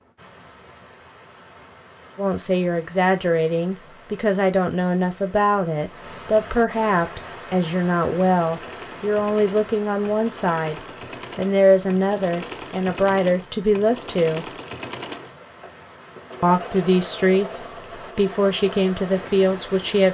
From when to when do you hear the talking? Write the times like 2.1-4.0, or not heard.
2.1-14.5, 16.4-20.0.